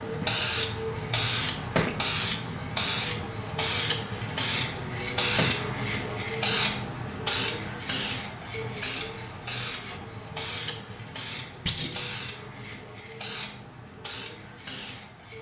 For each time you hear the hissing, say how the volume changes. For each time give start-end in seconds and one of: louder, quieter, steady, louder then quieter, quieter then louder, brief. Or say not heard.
0.0-15.3 quieter.